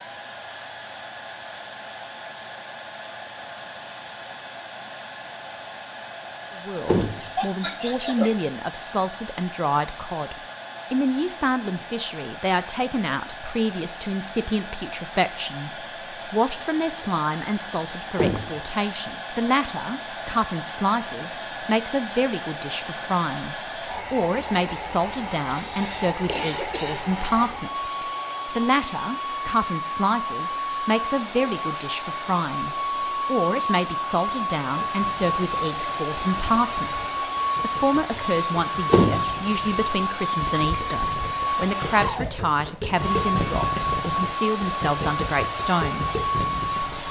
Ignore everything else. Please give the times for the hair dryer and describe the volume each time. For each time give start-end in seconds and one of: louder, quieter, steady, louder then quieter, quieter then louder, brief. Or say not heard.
0.0-47.0 louder.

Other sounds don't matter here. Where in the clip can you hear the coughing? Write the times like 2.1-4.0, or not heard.
7.3-8.3, 25.6-27.1.